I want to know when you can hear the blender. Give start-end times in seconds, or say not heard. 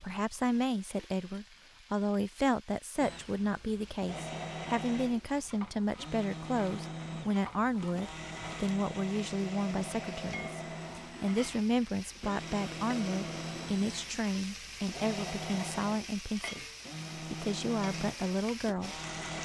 3.0-19.4.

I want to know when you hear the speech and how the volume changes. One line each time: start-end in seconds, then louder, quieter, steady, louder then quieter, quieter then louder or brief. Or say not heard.
0.0-19.0 steady.